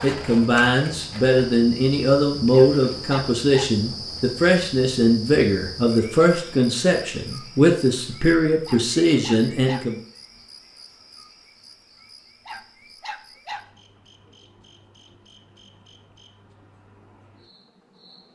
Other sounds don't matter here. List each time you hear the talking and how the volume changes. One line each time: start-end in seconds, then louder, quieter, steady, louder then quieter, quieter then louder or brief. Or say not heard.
0.0-9.9 steady.